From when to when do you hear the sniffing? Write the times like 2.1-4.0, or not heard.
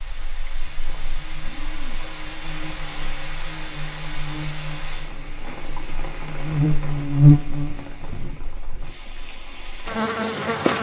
1.4-2.1.